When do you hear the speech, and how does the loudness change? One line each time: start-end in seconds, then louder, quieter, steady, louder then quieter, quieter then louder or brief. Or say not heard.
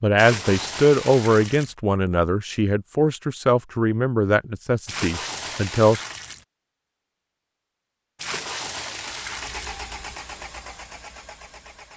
0.0-6.0 quieter.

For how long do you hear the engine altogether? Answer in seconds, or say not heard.
3 s.